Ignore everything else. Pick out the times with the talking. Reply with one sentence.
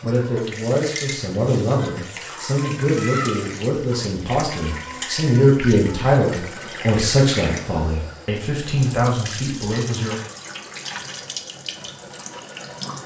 You can hear the talking from 0.0 to 10.2 s.